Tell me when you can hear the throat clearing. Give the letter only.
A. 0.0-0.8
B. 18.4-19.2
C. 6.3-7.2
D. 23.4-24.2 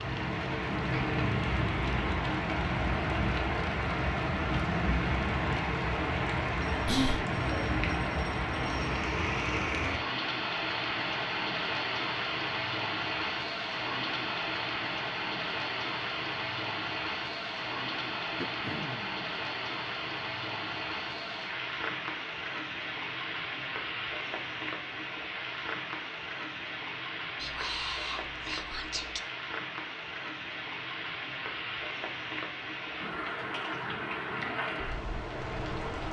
B.